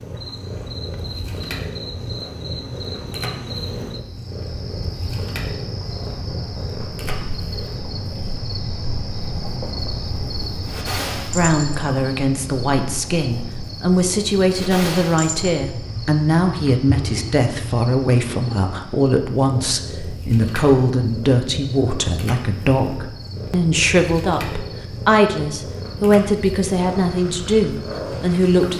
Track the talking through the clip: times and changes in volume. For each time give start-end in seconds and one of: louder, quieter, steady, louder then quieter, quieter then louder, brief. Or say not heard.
11.3-28.7 steady.